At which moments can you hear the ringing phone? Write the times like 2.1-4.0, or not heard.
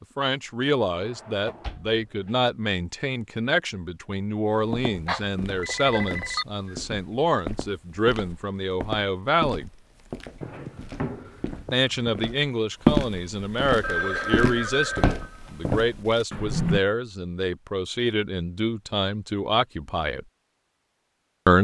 5.0-6.5, 13.8-15.8.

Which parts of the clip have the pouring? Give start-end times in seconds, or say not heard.
not heard.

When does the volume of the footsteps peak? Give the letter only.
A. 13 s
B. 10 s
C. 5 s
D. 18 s
A.